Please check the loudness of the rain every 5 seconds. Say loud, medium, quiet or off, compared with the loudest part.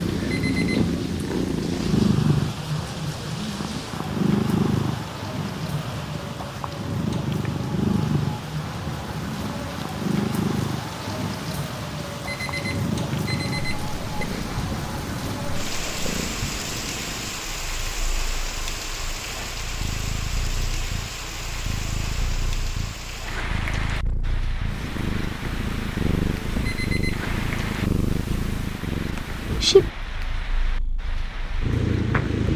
medium, loud, loud, loud, loud, medium, medium.